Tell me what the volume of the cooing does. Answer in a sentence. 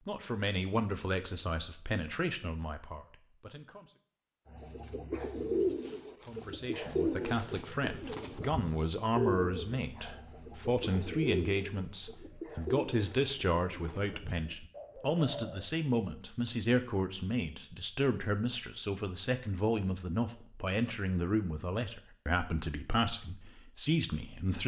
The volume of the cooing goes down.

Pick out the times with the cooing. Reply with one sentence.
The cooing can be heard from 4.5 to 15.7 s.